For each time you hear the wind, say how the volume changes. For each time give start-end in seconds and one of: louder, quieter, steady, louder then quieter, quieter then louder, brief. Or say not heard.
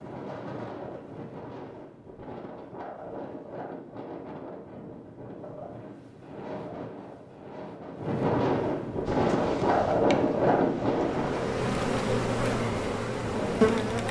0.0-14.0 louder then quieter.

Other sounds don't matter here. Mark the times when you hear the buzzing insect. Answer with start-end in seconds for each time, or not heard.
9.1-14.0.